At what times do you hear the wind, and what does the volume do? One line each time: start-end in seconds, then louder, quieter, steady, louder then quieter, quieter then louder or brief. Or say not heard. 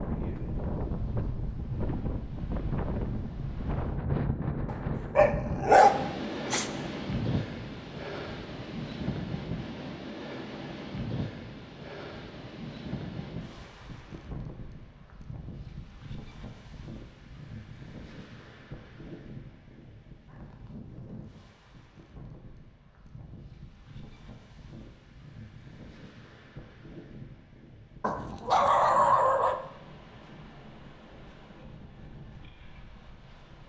0.0-33.6 quieter.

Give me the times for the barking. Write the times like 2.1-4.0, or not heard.
4.7-6.7, 28.0-29.6.